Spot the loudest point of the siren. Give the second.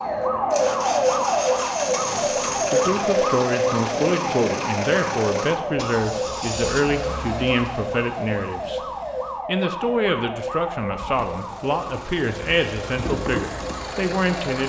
1 s.